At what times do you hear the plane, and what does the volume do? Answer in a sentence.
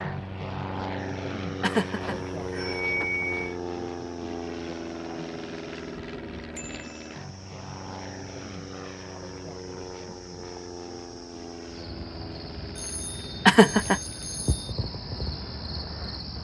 The plane can be heard from 0.0 to 16.3 s, getting quieter.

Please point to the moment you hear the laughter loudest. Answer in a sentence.
The volume of the laughter peaks at 14 seconds.